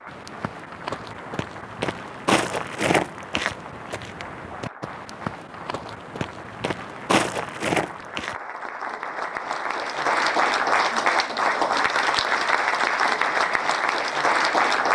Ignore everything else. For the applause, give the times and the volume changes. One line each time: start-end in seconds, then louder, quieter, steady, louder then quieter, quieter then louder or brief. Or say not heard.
0.0-14.8 louder.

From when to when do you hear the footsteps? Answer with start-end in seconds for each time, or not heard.
0.1-8.4.